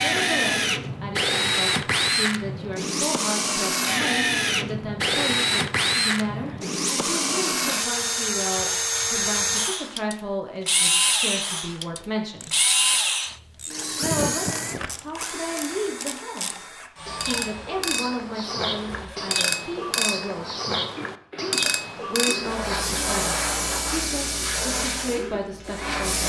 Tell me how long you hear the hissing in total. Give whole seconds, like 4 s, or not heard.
4 s.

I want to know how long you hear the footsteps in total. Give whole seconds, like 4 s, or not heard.
not heard.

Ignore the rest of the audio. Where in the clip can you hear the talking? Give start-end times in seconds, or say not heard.
0.0-12.6, 14.0-20.5, 21.5-26.2.